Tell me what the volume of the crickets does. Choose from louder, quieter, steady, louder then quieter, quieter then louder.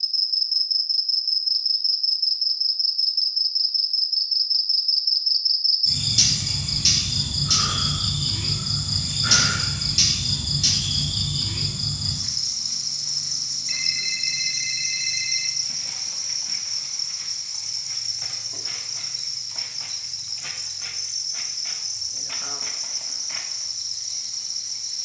quieter.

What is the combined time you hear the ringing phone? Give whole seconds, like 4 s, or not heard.
2 s.